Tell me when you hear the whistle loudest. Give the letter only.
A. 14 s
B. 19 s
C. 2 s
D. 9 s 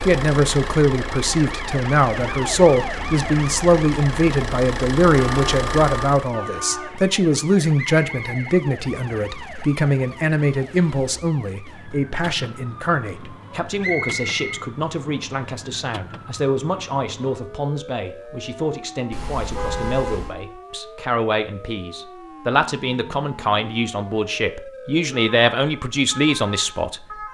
A.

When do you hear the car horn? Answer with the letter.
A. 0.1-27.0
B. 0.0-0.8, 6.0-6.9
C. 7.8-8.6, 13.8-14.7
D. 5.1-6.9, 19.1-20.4
D.